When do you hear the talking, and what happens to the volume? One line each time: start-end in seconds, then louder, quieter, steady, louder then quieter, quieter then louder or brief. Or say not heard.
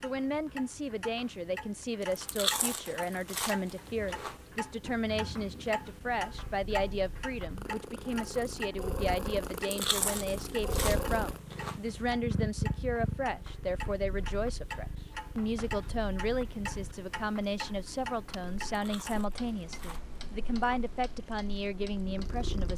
0.0-22.7 steady.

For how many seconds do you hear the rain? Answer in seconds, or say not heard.
not heard.